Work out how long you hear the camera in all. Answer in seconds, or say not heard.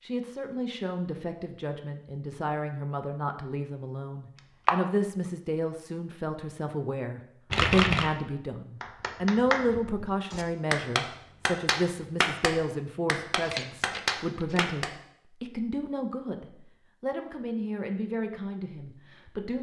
2 s.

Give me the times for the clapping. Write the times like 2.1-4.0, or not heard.
8.8-14.9.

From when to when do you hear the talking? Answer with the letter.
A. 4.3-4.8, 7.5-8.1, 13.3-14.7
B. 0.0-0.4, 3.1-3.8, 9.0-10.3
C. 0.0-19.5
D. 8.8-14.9
C.